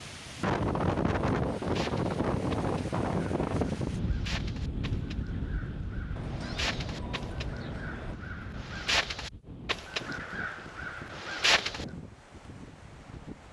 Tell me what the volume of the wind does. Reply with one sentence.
The loudness of the wind goes down.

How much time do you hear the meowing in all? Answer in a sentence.
The meowing can be heard for 2 seconds in total.